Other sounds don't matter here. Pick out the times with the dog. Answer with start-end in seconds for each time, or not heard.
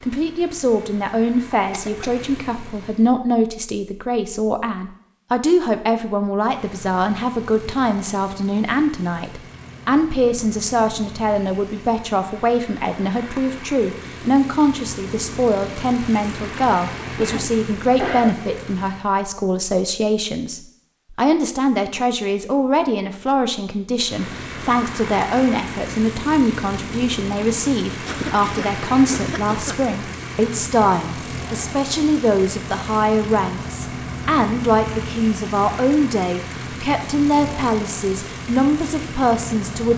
not heard.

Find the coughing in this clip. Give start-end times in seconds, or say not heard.
1.7-2.2, 17.1-18.6, 28.1-29.8.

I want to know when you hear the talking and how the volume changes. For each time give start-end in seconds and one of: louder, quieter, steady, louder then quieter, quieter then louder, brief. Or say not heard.
0.0-39.9 steady.